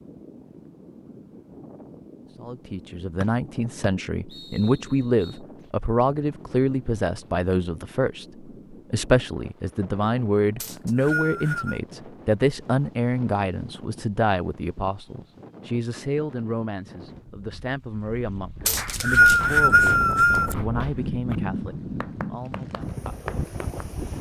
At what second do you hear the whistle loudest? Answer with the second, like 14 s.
19 s.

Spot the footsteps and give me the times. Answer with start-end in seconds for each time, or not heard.
not heard.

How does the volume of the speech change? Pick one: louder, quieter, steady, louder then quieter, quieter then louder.
quieter.